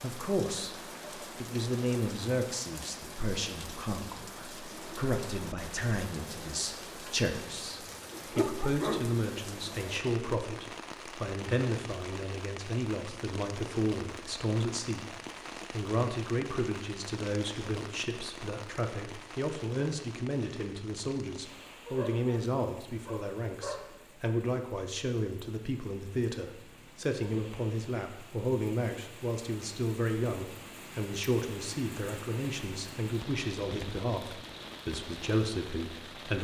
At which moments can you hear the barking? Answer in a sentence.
The barking can be heard from 8.1 to 9.4 s and from 21.9 to 23.9 s.